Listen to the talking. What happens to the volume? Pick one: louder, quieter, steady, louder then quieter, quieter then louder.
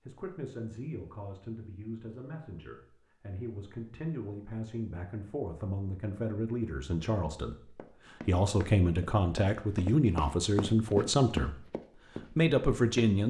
louder.